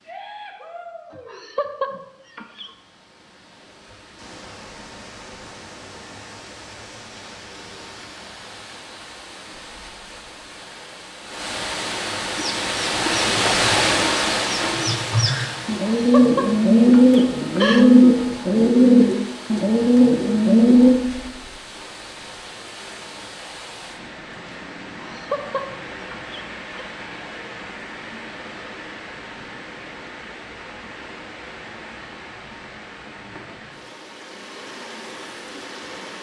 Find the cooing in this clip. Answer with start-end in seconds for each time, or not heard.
12.3-20.9.